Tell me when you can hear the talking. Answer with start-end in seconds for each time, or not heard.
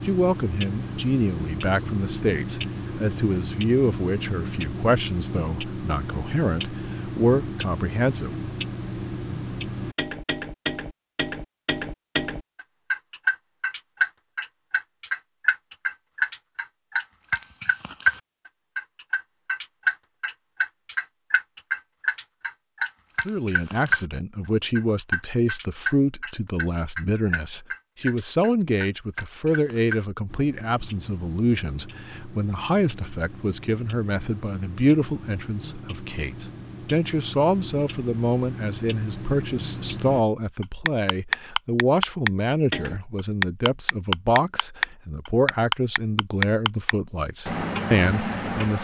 0.1-8.3, 23.2-48.7.